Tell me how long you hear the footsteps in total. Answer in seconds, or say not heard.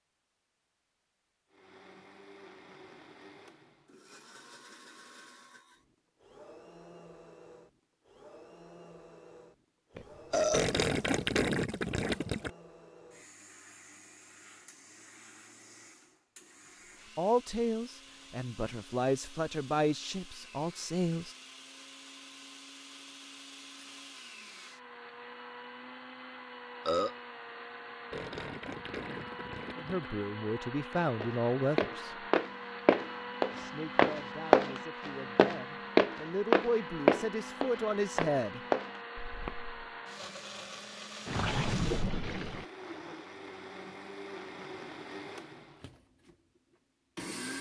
9 s.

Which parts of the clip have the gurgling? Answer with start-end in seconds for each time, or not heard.
10.5-12.5, 28.1-30.1, 41.2-42.6.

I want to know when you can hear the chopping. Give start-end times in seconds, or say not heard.
not heard.